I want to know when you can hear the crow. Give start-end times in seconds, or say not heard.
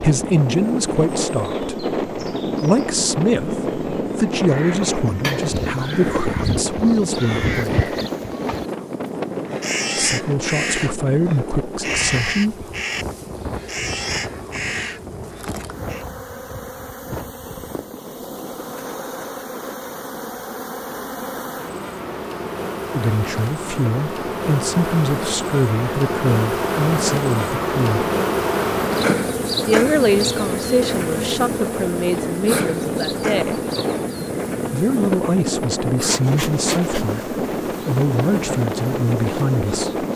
4.5-16.1.